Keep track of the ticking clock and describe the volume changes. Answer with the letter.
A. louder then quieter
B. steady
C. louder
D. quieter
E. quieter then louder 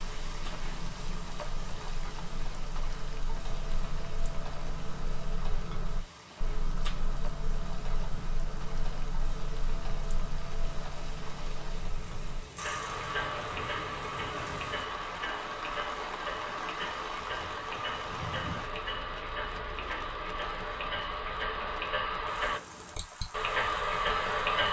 C.